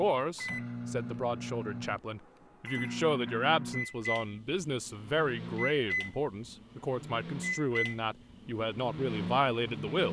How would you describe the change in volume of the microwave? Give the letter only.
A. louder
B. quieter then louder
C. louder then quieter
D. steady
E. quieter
D.